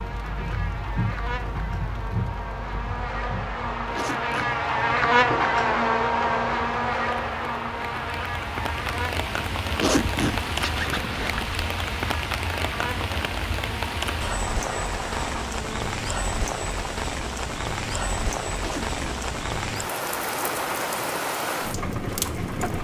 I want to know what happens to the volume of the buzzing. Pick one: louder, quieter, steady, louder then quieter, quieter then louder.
louder then quieter.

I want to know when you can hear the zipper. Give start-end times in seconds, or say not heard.
4.0-4.6, 9.8-11.5, 18.6-19.2.